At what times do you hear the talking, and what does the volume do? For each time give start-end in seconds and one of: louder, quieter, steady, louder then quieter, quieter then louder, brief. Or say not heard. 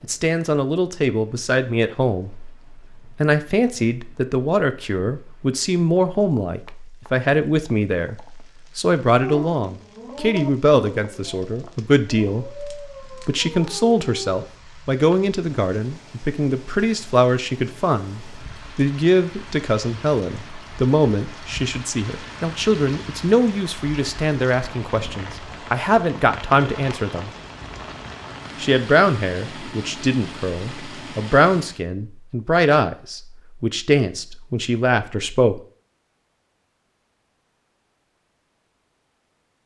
0.0-2.5 brief
3.1-27.3 steady
28.6-35.6 steady.